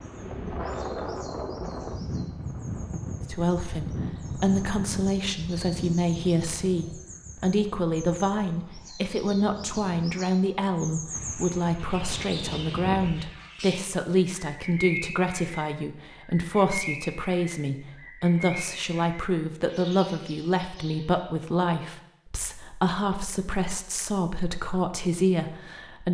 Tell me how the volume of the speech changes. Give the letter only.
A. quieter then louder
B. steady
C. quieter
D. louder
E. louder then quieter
B.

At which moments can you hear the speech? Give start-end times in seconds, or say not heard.
3.2-26.0.